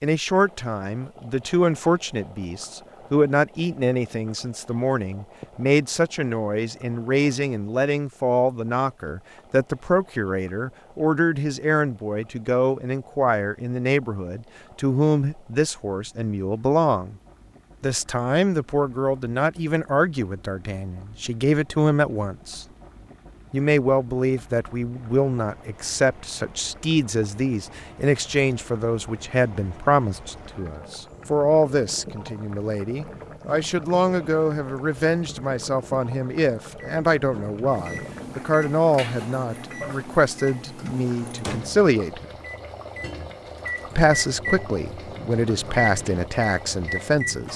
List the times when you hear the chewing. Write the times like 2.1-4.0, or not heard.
not heard.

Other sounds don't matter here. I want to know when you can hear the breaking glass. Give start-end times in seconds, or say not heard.
not heard.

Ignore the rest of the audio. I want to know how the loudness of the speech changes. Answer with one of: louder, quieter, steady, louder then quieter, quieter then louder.
steady.